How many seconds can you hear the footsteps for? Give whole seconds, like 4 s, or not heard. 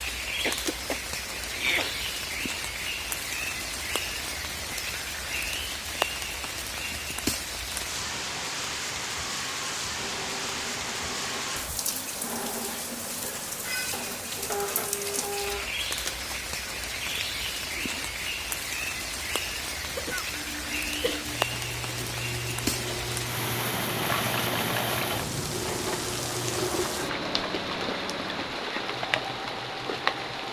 not heard.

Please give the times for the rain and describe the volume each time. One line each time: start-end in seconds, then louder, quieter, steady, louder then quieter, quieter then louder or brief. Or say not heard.
0.0-30.4 steady.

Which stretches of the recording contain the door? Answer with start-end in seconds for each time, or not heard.
not heard.